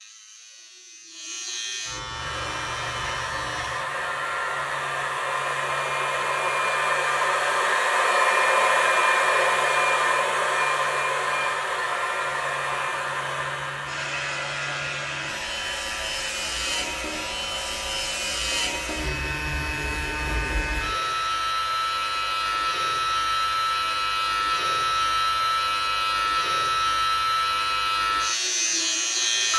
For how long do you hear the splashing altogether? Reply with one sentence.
The splashing can't be heard in this clip.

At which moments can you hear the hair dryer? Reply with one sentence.
You can hear the hair dryer from 2.0 to 29.5 s.